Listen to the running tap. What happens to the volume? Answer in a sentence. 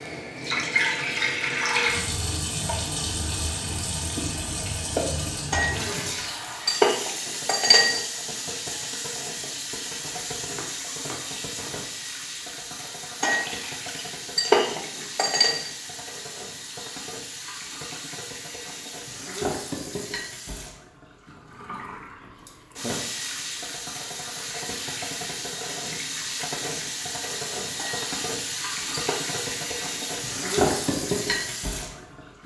The volume of the running tap goes down, then up.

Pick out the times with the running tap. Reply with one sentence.
The running tap can be heard from 0.0 to 32.4 s.